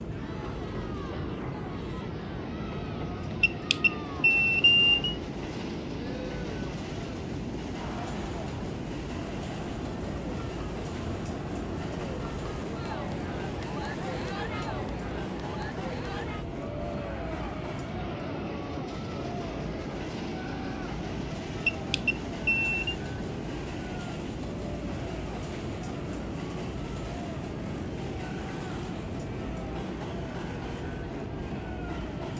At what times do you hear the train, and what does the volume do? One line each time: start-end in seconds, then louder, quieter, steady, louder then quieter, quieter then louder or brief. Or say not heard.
0.0-32.3 steady.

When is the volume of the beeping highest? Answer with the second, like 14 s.
5 s.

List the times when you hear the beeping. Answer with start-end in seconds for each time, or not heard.
3.4-5.2, 21.6-22.9.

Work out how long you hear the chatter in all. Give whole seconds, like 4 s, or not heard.
32 s.